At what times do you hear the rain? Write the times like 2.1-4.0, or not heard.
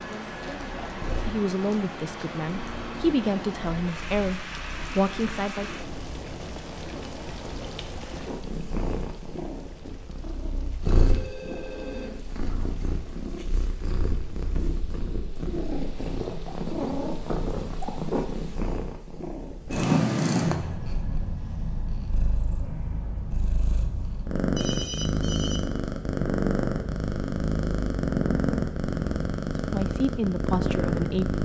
0.0-18.6.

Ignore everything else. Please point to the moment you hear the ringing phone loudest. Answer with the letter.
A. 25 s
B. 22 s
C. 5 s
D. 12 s
A.